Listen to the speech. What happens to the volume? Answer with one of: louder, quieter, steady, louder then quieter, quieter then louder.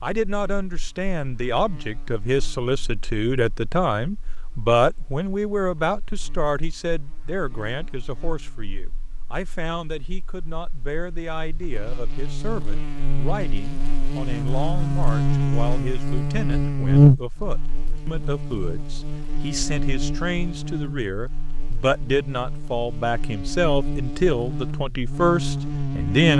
quieter then louder.